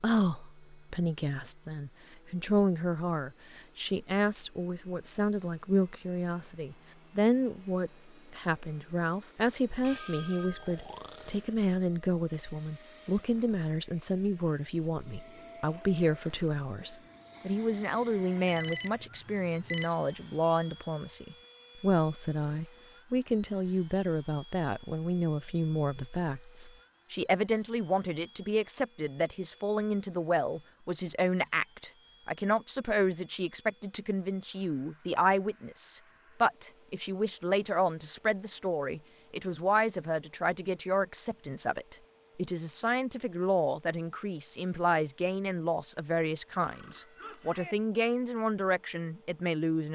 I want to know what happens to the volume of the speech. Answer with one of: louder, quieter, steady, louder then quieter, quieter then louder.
steady.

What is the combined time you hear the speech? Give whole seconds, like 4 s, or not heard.
50 s.